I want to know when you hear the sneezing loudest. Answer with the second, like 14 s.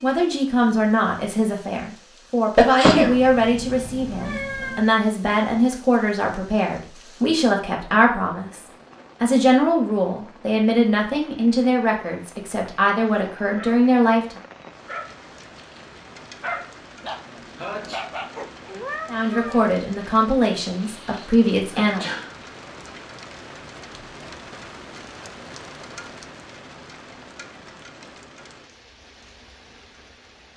3 s.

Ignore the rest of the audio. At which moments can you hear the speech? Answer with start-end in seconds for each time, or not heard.
0.0-14.4, 19.1-22.1.